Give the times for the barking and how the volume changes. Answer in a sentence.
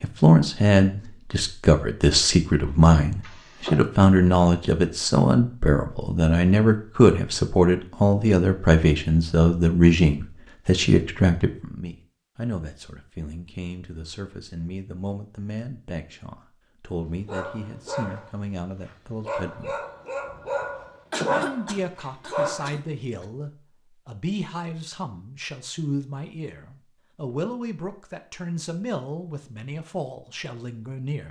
The barking can be heard from 17.2 to 22.9 s, getting louder.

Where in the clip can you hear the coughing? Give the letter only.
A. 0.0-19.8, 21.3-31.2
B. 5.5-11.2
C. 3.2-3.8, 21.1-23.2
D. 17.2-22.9
C.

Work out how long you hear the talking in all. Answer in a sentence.
The talking can be heard for 30 seconds in total.